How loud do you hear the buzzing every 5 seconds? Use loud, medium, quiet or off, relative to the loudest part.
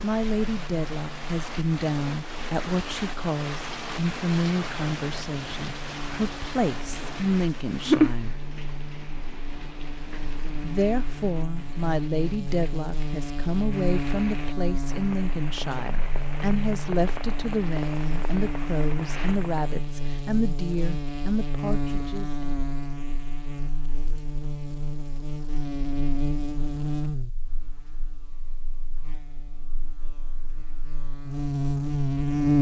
quiet, quiet, medium, medium, medium, medium, loud.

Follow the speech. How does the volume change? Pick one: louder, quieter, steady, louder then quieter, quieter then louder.
steady.